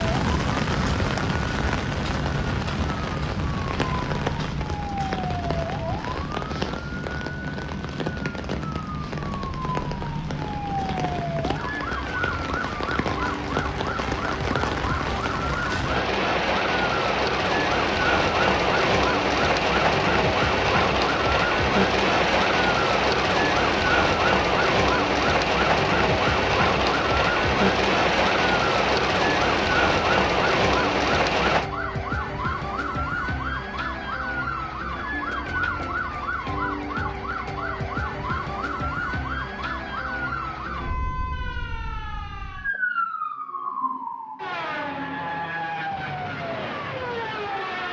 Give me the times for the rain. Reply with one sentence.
The rain can be heard from 0.0 to 31.6 s.